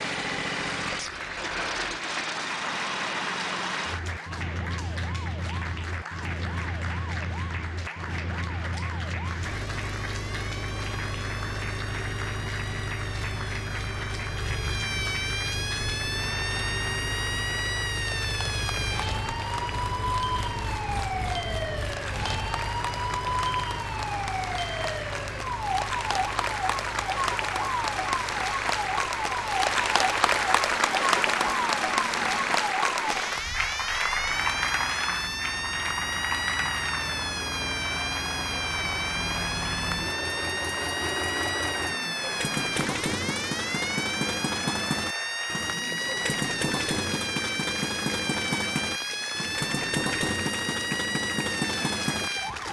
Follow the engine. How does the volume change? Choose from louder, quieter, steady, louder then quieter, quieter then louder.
quieter then louder.